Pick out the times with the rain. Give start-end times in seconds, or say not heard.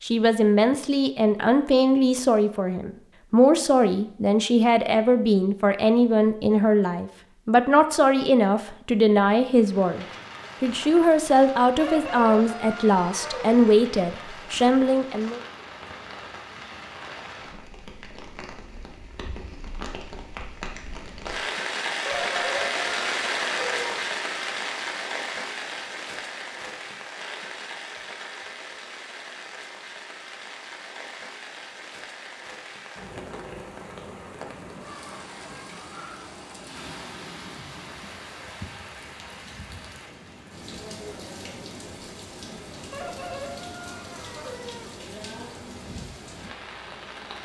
9.4-47.4.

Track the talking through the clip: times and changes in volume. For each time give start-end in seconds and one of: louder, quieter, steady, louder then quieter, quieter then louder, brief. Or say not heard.
0.0-15.4 steady.